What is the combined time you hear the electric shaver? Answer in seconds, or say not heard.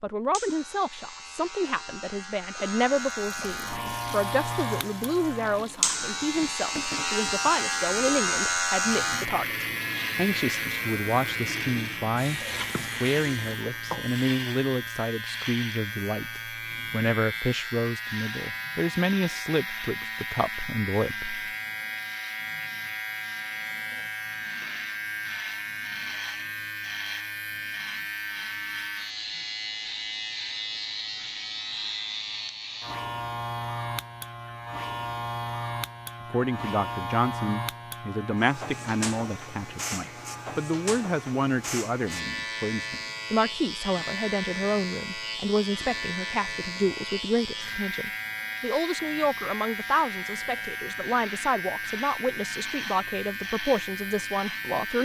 55 s.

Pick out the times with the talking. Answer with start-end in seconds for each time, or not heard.
0.0-21.4, 36.3-55.0.